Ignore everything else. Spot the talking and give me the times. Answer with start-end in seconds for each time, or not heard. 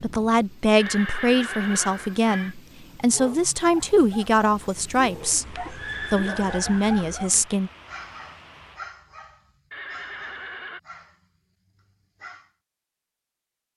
0.0-7.7.